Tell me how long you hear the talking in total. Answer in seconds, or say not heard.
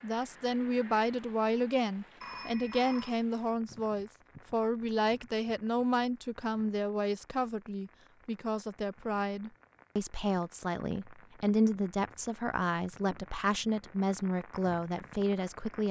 16 s.